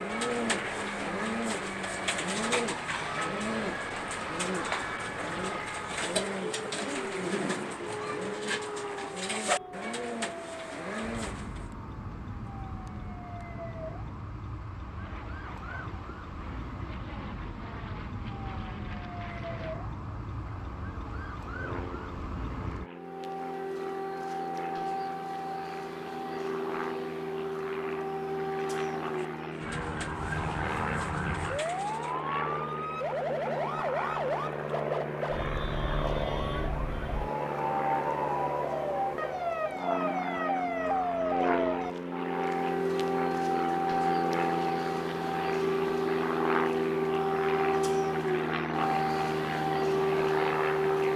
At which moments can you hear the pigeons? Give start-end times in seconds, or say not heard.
0.0-11.7, 29.1-32.2.